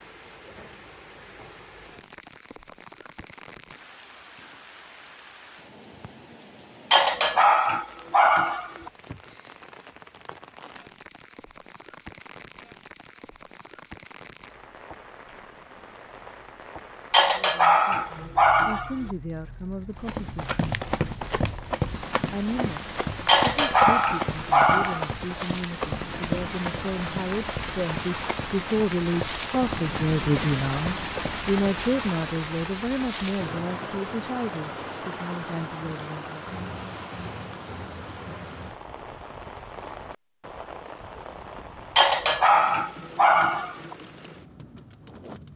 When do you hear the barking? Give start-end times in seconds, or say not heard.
6.9-8.9, 17.1-19.1, 23.2-25.1, 42.0-44.0.